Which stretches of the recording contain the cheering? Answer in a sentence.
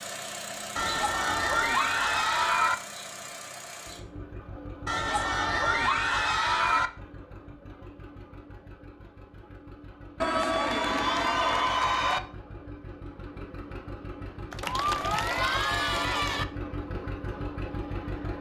The cheering can be heard from 0.8 to 2.8 s, from 4.8 to 6.9 s, from 10.2 to 12.2 s and from 14.5 to 16.4 s.